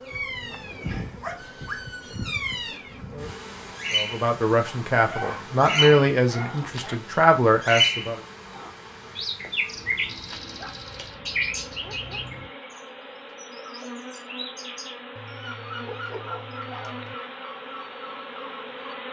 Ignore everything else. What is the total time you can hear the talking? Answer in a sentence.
You can hear the talking for 4 seconds altogether.